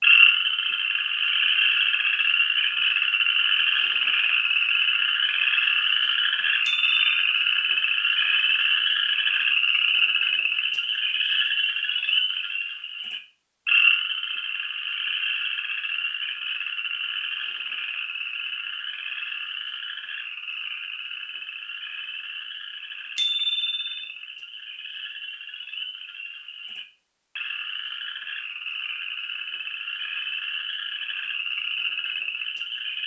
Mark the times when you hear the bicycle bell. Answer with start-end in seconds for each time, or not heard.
6.7-7.2, 23.1-23.9.